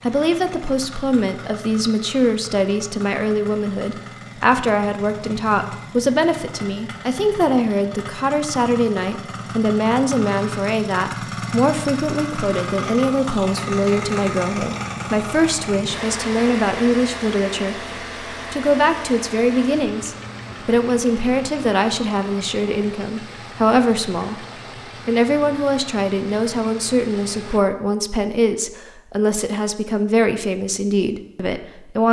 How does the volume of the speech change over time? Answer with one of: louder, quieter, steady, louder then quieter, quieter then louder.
steady.